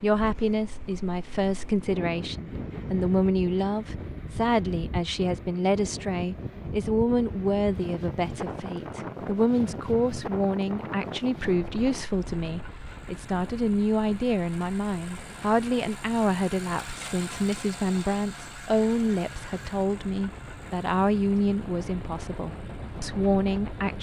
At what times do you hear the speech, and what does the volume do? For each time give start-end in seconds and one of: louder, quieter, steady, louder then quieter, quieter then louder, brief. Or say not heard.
0.0-23.9 steady.